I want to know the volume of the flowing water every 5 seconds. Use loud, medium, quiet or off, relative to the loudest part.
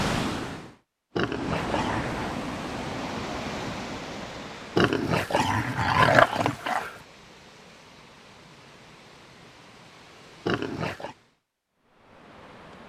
loud, quiet, quiet.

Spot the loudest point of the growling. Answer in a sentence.
The volume of the growling peaks at 6 seconds.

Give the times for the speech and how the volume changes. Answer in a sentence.
You can't hear the speech here.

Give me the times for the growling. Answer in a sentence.
You can hear the growling from 1.1 to 2.4 s, from 4.8 to 7.0 s and from 10.4 to 11.2 s.